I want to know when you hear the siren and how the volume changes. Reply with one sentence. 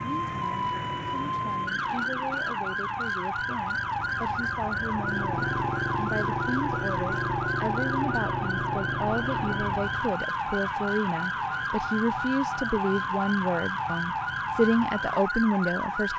The siren can be heard from 0.0 to 16.1 s, at a steady volume.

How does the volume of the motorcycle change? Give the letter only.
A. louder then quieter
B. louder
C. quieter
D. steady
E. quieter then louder
B.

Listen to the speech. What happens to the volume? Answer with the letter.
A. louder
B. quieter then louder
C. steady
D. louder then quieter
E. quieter
A.